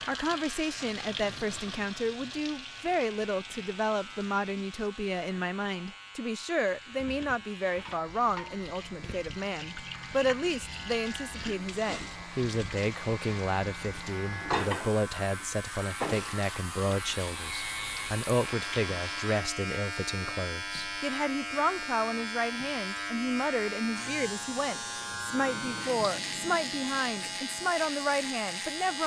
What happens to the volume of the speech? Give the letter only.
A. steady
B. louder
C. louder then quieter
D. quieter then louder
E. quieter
A.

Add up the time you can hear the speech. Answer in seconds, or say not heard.
29 s.